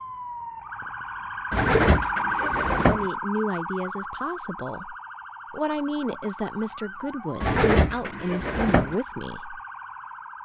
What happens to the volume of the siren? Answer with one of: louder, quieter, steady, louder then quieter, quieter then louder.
quieter.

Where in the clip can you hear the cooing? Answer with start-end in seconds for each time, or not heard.
1.5-3.1, 7.4-8.9.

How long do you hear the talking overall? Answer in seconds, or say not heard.
7 s.